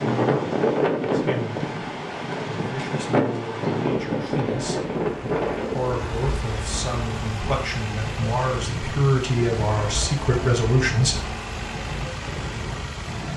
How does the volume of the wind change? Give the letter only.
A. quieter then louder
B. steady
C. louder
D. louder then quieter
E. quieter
E.